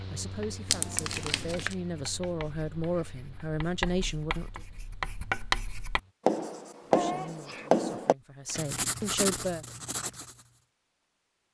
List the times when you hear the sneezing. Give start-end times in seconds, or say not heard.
6.9-7.7.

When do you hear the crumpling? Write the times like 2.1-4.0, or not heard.
0.7-1.8, 8.4-9.2.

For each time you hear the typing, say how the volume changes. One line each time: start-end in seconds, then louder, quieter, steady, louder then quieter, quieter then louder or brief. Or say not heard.
not heard.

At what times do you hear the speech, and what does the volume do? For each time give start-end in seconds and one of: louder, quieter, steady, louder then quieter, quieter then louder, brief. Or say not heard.
0.1-4.6 louder
6.9-9.7 brief.